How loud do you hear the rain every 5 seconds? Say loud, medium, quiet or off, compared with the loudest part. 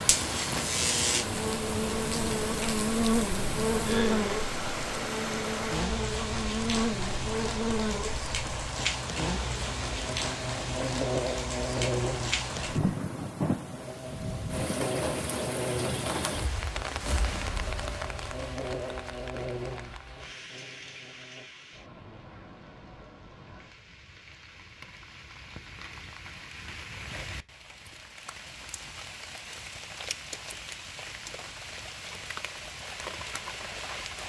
loud, loud, loud, loud, quiet, medium, medium.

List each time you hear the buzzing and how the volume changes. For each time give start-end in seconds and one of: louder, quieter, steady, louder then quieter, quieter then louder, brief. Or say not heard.
0.0-21.4 quieter.